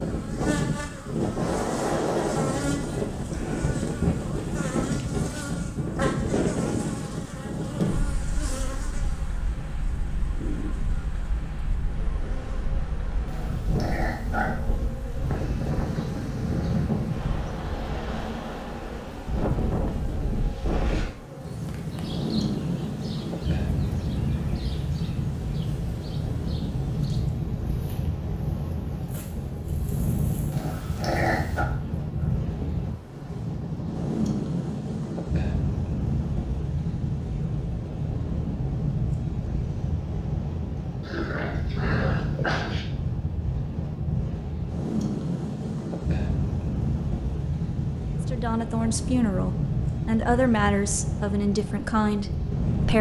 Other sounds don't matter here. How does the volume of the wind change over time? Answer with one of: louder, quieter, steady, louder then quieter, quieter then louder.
steady.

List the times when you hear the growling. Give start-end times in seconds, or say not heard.
13.2-14.6, 30.5-31.6, 41.0-42.9.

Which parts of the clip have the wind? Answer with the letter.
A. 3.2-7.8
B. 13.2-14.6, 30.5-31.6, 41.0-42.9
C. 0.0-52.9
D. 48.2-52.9
C.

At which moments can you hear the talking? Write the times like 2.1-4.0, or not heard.
48.2-52.9.